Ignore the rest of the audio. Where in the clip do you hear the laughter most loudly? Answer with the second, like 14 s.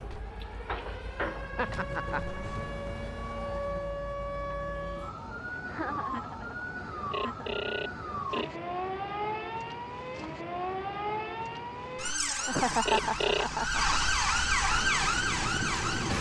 13 s.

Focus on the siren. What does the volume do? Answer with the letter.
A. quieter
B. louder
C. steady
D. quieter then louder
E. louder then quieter
B.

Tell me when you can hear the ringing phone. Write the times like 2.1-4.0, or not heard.
0.7-1.6, 7.1-8.5, 12.8-13.5.